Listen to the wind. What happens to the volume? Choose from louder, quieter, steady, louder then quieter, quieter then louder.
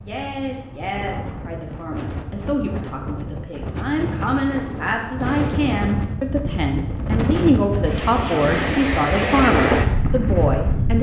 louder.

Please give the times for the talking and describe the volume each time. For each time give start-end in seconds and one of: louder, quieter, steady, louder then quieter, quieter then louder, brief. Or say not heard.
0.0-10.9 louder.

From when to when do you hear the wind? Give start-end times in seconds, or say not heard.
0.0-10.9.